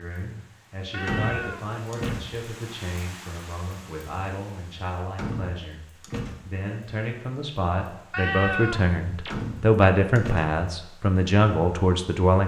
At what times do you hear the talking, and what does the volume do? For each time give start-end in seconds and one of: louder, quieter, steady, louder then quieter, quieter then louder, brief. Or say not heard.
0.0-12.4 louder.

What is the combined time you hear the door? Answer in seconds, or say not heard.
4 s.